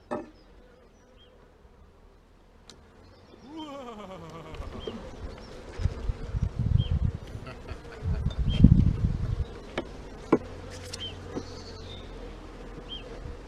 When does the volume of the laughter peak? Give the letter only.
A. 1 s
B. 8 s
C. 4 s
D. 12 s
C.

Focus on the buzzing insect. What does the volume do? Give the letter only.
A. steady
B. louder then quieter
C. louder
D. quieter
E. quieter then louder
B.